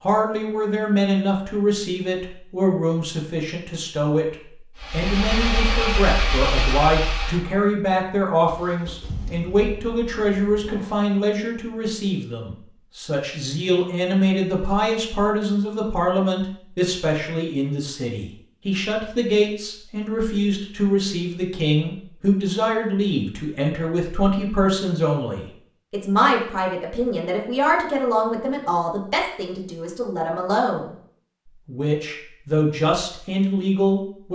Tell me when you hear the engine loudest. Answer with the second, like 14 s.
6 s.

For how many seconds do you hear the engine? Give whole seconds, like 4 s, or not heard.
6 s.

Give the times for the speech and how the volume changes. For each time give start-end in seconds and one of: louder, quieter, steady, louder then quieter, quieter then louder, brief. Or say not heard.
0.0-30.9 steady
31.6-34.3 brief.